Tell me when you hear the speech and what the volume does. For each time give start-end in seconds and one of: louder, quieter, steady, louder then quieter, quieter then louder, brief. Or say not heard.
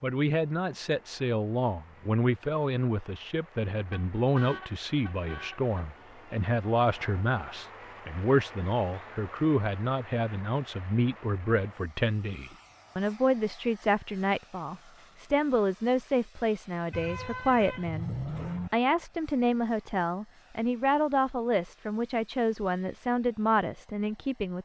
0.0-24.5 steady.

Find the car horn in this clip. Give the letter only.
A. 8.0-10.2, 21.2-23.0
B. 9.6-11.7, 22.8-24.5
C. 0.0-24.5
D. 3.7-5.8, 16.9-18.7
D.